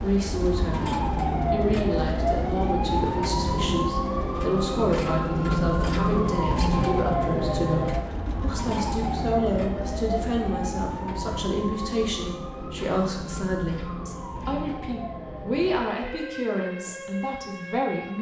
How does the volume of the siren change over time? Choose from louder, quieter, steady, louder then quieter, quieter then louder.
quieter.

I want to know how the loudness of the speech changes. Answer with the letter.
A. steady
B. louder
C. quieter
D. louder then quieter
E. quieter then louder
A.